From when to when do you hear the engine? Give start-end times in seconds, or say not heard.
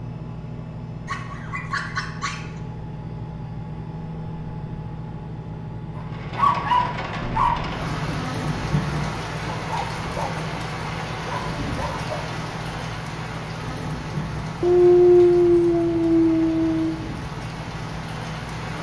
0.0-18.7.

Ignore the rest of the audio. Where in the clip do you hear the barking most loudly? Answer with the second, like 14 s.
15 s.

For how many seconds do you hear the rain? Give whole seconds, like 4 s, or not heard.
13 s.